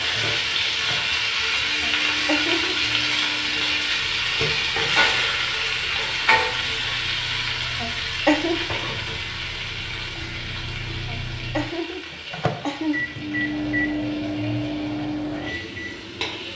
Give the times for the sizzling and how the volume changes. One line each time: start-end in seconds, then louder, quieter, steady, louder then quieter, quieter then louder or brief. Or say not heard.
0.0-16.5 quieter.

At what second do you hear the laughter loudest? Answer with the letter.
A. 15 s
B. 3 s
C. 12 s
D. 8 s
D.